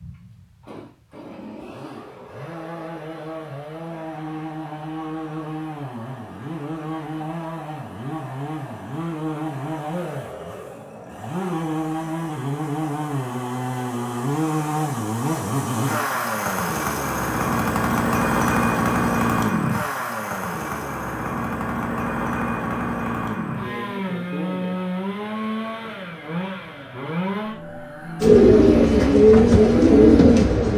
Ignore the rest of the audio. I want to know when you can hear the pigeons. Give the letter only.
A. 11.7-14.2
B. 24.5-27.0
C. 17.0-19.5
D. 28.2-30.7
D.